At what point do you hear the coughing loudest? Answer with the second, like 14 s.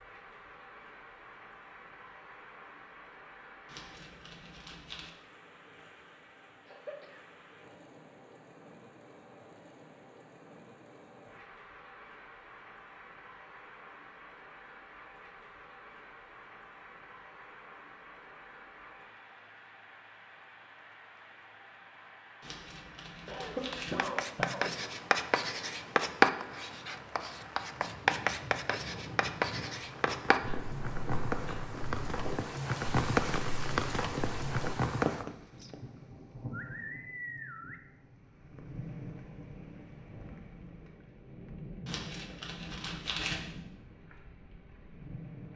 24 s.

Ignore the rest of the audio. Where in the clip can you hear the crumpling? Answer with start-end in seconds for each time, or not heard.
3.6-5.1, 22.4-24.1, 41.9-43.5.